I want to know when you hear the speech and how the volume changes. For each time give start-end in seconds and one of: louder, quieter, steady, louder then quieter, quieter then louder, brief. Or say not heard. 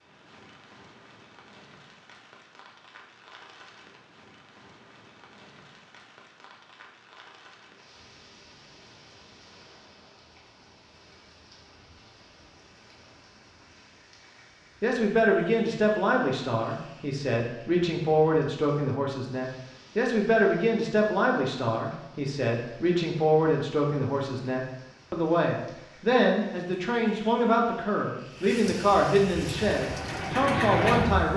14.8-31.3 steady.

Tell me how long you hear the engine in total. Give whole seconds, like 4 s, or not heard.
2 s.